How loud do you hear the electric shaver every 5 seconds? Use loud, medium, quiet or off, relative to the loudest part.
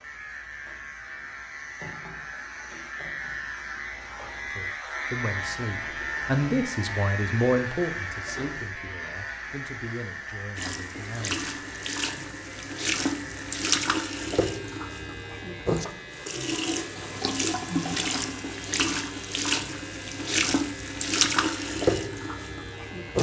loud, loud, medium, medium, medium.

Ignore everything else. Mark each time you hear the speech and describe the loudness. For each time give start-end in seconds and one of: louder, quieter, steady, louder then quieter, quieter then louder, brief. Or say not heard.
4.5-11.4 louder then quieter.